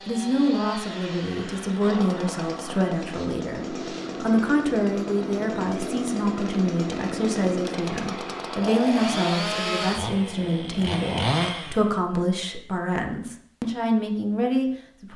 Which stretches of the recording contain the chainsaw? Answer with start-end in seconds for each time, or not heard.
0.0-11.9.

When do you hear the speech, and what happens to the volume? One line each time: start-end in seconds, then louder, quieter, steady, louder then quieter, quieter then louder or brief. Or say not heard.
0.1-15.1 steady.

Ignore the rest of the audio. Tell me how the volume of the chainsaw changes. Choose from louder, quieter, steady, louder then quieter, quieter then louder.
louder.